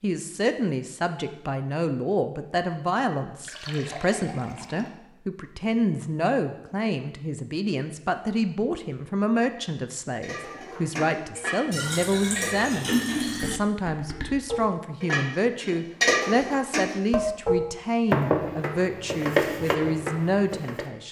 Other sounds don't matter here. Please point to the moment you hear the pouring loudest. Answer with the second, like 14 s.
13 s.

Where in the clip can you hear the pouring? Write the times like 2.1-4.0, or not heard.
3.4-4.9, 11.7-13.6.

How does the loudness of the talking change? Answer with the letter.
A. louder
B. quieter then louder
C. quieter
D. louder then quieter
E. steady
E.